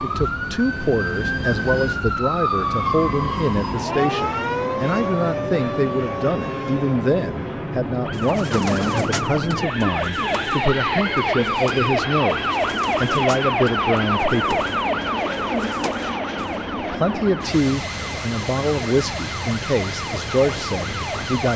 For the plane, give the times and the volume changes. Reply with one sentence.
The plane can be heard from 0.0 to 21.5 s, at a steady volume.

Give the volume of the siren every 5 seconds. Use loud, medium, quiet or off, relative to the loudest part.
loud, medium, loud, medium, medium.